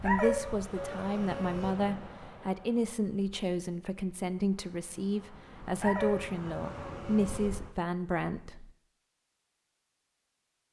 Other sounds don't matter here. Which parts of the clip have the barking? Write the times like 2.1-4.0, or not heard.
0.1-1.8, 5.8-7.5.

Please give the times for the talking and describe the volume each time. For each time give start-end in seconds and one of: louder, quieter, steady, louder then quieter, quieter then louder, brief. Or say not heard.
0.0-8.7 steady.